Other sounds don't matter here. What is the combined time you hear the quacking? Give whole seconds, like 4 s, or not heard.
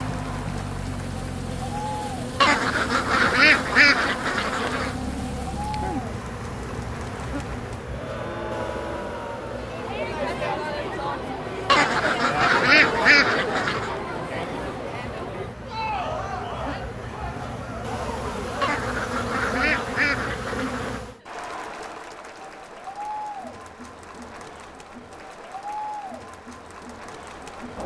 7 s.